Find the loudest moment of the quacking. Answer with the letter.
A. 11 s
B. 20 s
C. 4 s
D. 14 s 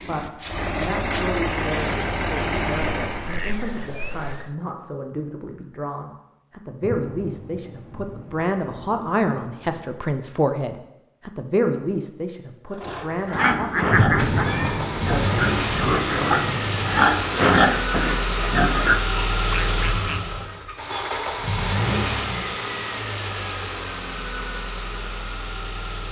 D.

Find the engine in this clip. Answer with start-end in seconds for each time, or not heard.
0.0-3.4, 12.7-26.0.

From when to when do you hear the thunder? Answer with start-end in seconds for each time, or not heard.
6.8-9.8, 13.9-17.1.